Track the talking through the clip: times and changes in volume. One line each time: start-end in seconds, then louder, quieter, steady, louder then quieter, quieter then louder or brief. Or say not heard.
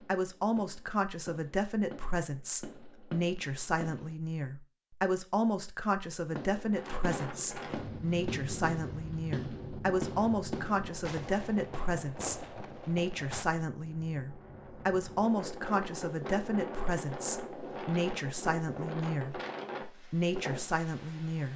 0.1-21.5 steady.